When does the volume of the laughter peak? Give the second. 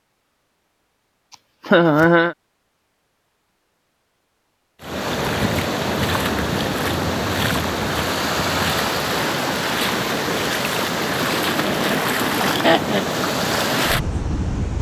2 s.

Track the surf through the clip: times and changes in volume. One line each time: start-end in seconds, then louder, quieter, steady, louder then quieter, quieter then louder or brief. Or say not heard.
4.8-14.7 steady.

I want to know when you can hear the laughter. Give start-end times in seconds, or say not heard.
1.3-2.4, 11.6-13.1.